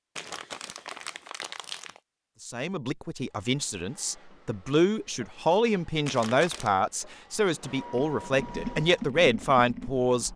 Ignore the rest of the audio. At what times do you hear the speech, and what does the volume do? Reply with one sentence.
You can hear the speech from 2.4 to 10.3 s, getting louder.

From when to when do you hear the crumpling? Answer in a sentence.
The crumpling can be heard from 0.1 to 2.0 s and from 6.0 to 6.7 s.